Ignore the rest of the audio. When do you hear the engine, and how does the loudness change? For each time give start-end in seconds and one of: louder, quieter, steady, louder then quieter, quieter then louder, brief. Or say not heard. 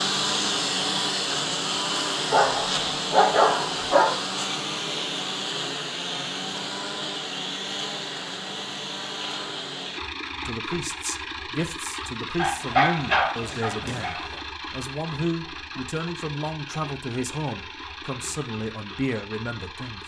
0.0-20.0 quieter.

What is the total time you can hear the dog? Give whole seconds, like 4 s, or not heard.
4 s.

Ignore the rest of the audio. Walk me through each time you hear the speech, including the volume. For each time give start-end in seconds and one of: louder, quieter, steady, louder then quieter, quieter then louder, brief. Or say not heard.
10.4-20.0 steady.